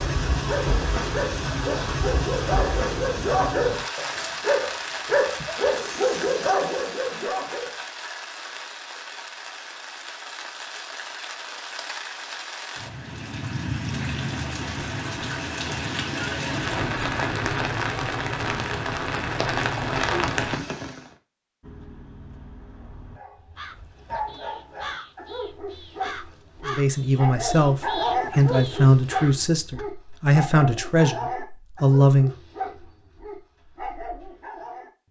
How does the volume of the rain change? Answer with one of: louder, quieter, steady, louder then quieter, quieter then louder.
quieter then louder.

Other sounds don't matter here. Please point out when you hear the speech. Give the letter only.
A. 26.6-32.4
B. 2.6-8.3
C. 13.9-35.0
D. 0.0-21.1
A.